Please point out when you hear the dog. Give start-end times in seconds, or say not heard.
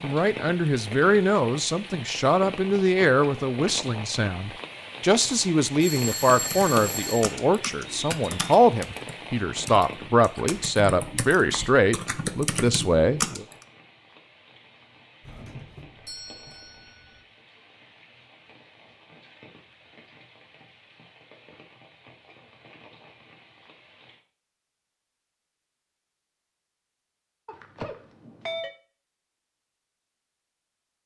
not heard.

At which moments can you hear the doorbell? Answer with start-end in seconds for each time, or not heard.
5.8-7.3, 15.2-17.2, 27.4-28.7.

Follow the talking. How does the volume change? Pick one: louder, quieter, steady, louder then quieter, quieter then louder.
steady.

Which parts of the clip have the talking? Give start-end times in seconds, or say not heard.
0.0-13.4.